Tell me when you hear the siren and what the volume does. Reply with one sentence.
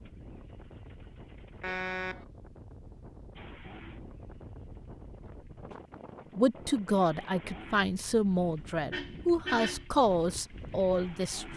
The siren can't be heard in this clip.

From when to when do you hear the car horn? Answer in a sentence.
You can hear the car horn from 1.6 to 2.2 s and from 8.9 to 9.8 s.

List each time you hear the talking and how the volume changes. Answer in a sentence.
The talking can be heard from 6.3 to 11.5 s, at a steady volume.